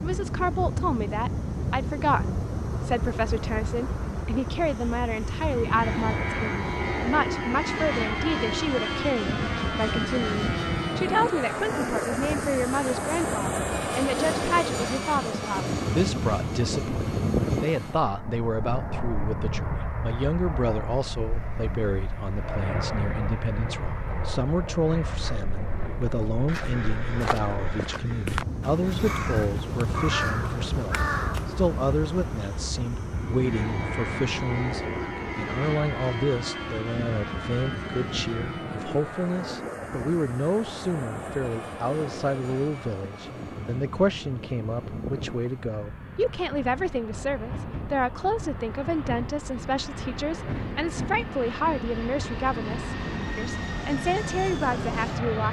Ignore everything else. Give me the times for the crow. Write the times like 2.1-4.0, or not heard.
26.1-32.8.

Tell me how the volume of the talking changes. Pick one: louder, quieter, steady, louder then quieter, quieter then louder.
steady.